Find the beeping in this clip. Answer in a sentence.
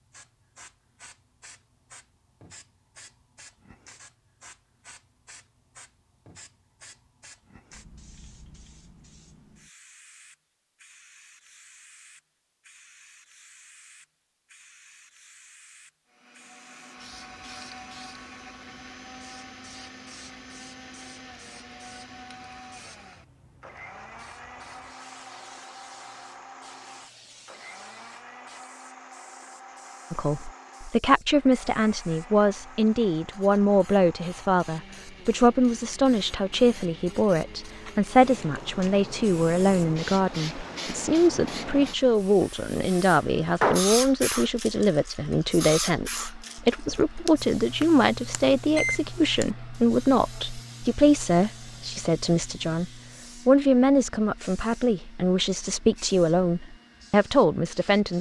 The beeping can be heard from 46.9 to 49.5 s.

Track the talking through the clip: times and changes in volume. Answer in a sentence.
The talking can be heard from 30.1 to 58.1 s, at a steady volume.